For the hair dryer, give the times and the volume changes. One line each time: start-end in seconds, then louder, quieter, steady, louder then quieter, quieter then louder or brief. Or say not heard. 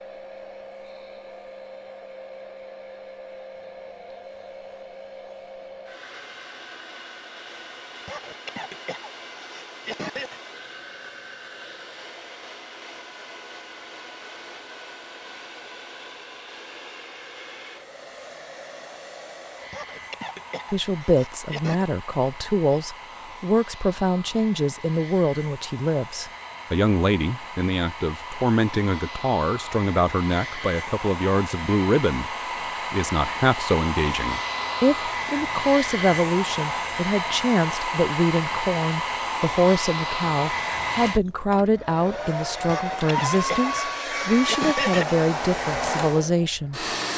0.0-47.1 louder.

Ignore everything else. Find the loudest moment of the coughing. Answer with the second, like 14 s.
45 s.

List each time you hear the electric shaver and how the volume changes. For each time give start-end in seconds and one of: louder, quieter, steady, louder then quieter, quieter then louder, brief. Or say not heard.
not heard.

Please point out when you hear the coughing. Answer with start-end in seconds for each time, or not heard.
8.1-10.4, 19.7-21.9, 42.6-45.1.